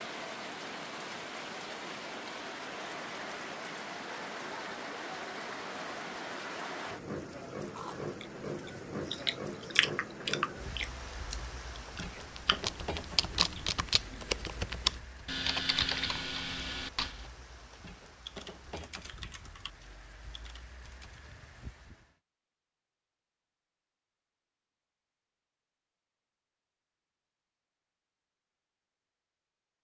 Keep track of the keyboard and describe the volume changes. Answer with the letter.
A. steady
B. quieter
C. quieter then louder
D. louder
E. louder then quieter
B.